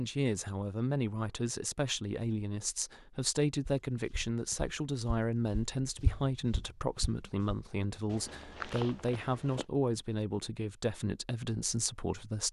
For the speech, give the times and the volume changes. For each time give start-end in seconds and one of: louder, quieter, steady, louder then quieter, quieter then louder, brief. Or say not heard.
0.0-12.4 steady.